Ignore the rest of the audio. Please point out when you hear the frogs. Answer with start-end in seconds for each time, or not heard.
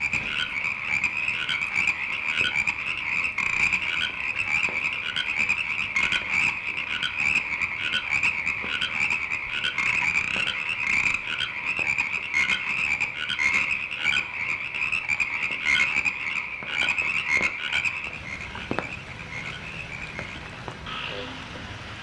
0.0-21.9.